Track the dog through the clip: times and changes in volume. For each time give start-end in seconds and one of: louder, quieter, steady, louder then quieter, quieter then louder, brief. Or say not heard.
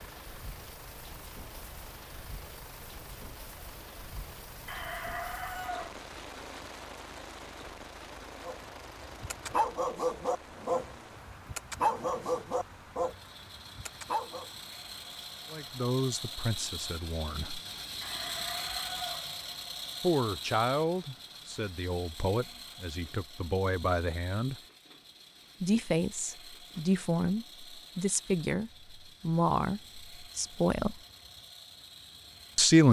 8.4-14.5 quieter.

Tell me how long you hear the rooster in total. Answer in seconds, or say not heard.
3 s.